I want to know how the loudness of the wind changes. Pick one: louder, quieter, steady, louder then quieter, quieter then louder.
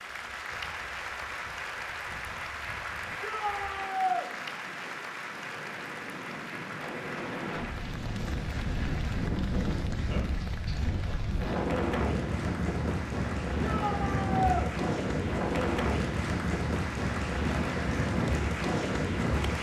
louder.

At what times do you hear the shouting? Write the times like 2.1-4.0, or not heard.
3.2-4.3, 13.6-14.7.